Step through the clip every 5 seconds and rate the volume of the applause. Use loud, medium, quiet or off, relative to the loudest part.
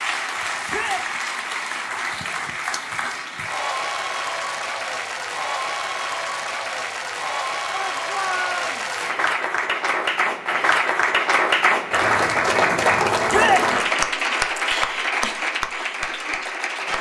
medium, medium, loud, medium.